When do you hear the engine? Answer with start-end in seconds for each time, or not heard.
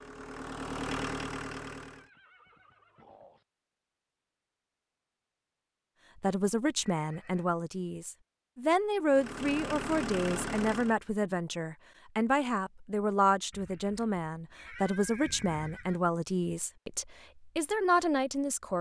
0.0-2.1, 9.1-11.0.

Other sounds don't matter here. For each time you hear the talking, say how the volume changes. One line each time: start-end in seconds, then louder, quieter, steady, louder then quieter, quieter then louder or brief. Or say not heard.
6.2-18.7 steady.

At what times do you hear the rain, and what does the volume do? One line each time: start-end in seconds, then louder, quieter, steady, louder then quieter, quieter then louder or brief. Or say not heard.
not heard.